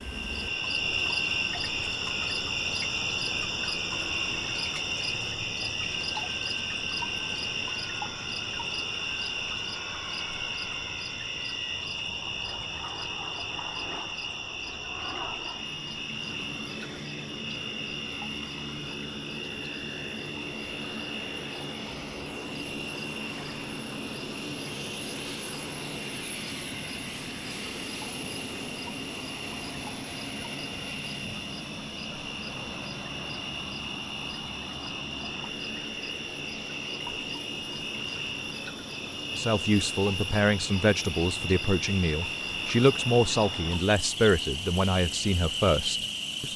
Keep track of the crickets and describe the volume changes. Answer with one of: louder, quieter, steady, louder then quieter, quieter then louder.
quieter then louder.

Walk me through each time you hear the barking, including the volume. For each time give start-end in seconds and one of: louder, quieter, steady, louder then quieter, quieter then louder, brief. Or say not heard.
not heard.